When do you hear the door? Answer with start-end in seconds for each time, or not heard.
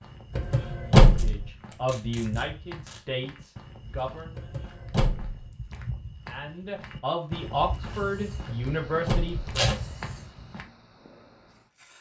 0.3-1.4, 4.3-5.5, 8.4-9.4.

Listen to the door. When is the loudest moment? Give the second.
1 s.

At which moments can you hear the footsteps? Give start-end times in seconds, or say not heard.
0.0-10.7.